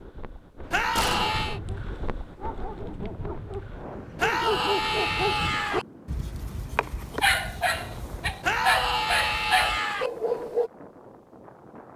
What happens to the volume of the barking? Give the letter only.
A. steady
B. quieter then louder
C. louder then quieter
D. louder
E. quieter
D.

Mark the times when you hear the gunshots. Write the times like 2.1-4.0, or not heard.
0.9-1.4.